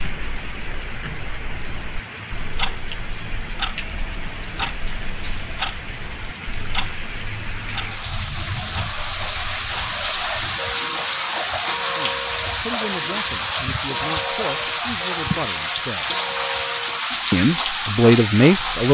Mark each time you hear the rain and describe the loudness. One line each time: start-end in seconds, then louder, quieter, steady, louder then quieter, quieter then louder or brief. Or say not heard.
0.0-18.9 louder.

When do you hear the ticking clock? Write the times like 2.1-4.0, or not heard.
0.0-18.9.